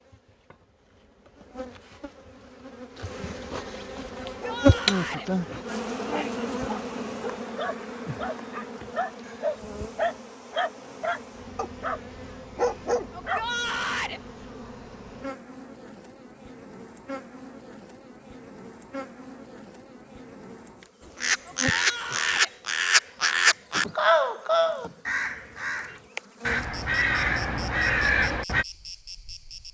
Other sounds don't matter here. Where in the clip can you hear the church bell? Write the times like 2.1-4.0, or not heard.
not heard.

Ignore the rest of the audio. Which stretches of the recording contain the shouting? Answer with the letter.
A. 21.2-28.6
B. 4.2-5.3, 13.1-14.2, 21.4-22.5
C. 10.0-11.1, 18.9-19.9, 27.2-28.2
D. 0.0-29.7
B.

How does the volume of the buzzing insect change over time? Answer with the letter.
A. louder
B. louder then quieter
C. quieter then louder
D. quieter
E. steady
D.